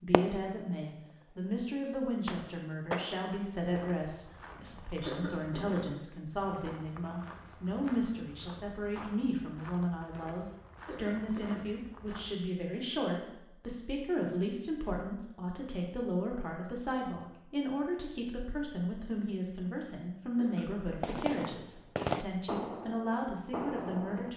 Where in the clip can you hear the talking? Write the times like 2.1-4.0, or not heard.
0.0-24.3.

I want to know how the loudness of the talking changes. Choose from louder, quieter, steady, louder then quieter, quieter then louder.
steady.